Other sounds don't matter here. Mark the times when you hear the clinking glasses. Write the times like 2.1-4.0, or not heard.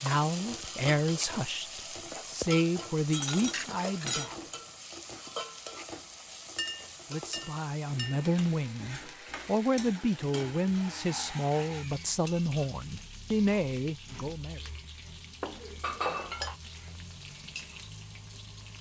3.1-4.3, 6.5-8.2, 15.4-16.6.